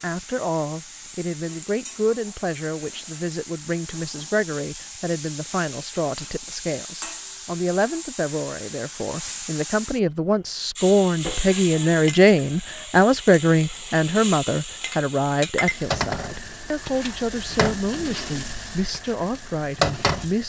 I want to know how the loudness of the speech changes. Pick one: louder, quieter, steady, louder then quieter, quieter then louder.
louder then quieter.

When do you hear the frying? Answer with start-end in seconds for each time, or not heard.
0.0-20.4.